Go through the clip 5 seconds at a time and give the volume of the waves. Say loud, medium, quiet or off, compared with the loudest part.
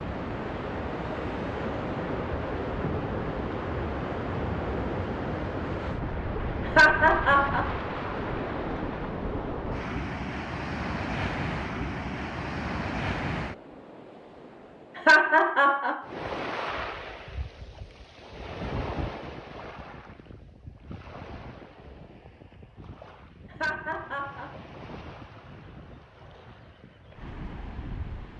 loud, loud, loud, medium, quiet, quiet.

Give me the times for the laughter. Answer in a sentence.
The laughter can be heard from 6.7 to 7.8 s, from 14.9 to 16.1 s and from 23.5 to 24.6 s.